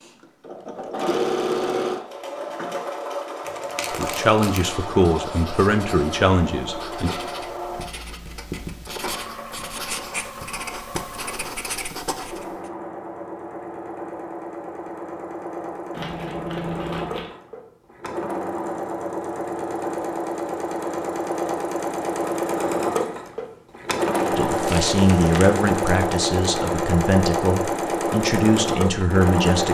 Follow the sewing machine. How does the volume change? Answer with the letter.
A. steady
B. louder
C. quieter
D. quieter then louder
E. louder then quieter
D.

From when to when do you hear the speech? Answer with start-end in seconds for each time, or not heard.
3.9-7.1, 24.3-29.6.